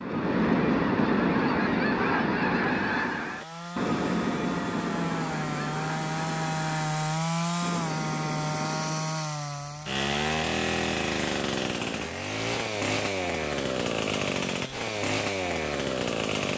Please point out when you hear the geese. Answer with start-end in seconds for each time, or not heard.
0.0-9.3.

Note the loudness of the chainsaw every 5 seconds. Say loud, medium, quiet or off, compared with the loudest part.
medium, loud, loud, loud.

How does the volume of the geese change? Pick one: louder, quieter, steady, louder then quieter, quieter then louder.
quieter.